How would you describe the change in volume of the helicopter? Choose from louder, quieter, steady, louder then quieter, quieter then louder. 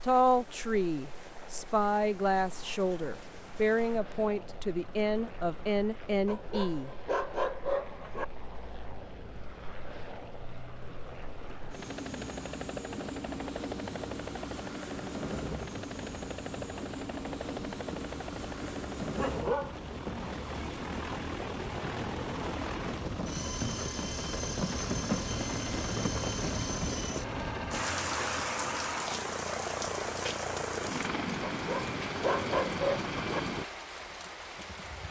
louder.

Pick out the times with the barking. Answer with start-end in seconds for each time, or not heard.
6.2-8.2, 19.1-19.8, 31.4-33.4.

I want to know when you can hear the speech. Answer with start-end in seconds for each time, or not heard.
0.1-6.9.